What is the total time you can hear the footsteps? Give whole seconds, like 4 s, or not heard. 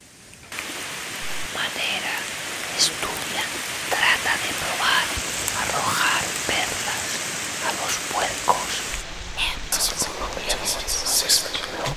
not heard.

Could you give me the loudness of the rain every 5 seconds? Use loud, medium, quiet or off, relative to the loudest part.
loud, loud, medium.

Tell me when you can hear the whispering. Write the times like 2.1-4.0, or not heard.
1.4-11.9.